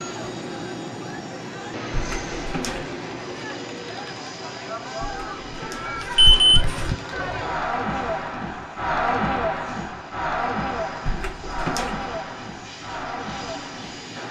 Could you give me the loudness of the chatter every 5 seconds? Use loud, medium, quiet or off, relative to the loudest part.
medium, loud, loud.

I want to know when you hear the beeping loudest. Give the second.
6 s.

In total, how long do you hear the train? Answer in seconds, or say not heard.
14 s.